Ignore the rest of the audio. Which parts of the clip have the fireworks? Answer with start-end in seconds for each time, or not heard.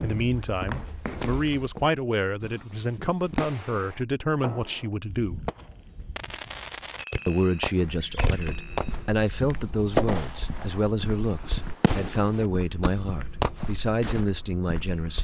2.4-14.2.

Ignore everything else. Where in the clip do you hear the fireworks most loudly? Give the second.
10 s.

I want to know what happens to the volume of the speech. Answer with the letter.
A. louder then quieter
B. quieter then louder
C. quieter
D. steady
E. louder
D.